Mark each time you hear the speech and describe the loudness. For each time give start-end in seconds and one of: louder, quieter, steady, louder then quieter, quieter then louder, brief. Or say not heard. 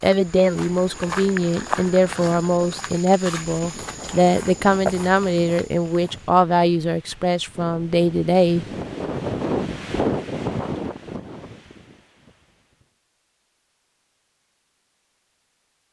0.0-8.7 steady.